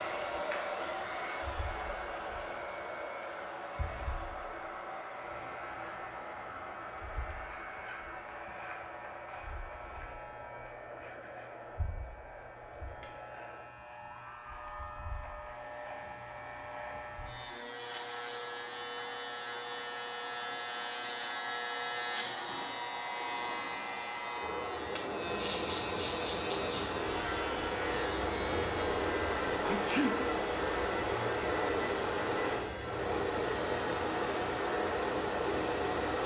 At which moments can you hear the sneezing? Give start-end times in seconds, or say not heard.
29.6-30.2.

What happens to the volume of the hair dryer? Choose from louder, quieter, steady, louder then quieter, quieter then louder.
quieter then louder.